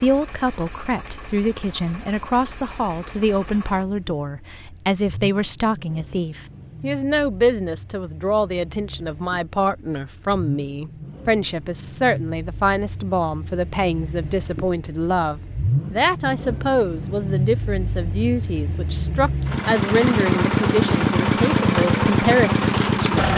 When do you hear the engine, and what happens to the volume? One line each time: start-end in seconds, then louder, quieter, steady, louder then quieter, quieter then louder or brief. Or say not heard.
0.0-23.3 louder.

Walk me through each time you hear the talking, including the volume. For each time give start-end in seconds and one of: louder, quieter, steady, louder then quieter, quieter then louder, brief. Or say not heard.
0.0-23.3 steady.